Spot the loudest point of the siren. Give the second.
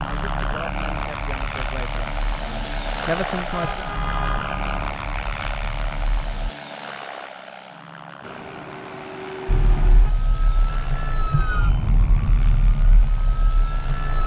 12 s.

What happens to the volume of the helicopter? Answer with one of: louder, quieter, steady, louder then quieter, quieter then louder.
quieter.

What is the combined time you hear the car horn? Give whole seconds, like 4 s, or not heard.
3 s.